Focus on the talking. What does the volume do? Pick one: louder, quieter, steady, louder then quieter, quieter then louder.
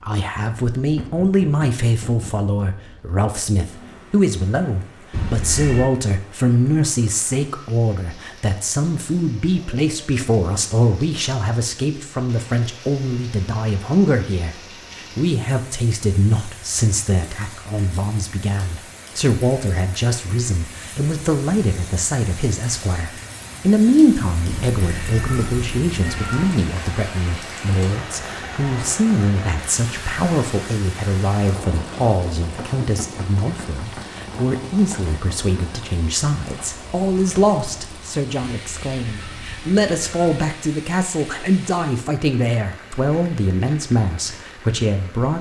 steady.